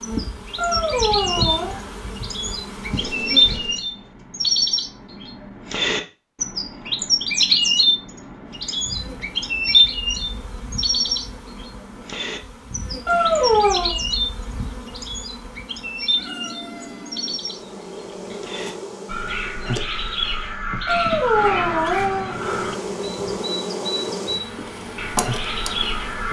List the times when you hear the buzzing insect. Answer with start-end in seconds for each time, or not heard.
0.0-3.9, 8.6-20.6, 22.2-26.2.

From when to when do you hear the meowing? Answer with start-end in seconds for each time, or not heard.
0.6-1.8, 13.1-13.9, 20.9-22.4.